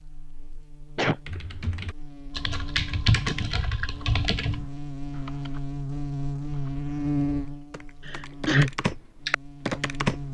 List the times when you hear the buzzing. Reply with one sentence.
The buzzing can be heard from 0.0 to 10.2 s.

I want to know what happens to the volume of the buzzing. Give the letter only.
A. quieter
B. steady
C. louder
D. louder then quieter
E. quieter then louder
C.